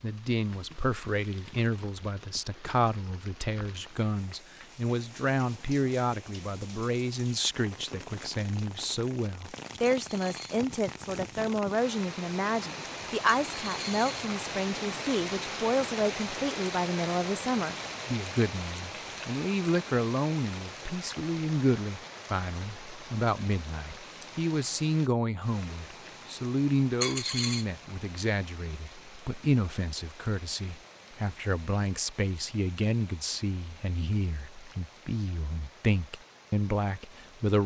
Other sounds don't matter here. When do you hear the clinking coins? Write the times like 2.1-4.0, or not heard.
9.8-10.6, 13.5-14.2, 27.0-27.6.